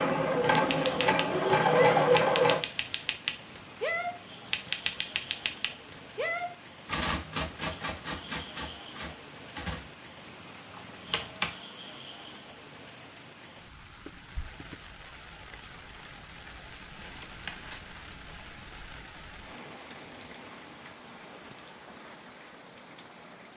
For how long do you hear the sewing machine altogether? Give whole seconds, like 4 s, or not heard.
3 s.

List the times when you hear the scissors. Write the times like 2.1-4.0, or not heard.
16.9-18.0.